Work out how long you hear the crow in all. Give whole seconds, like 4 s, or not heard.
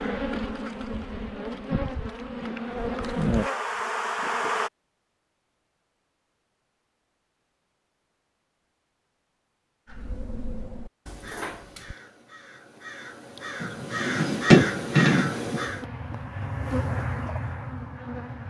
6 s.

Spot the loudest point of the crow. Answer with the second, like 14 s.
15 s.